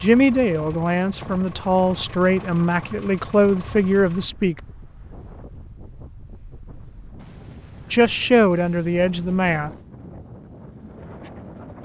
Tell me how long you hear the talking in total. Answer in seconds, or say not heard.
6 s.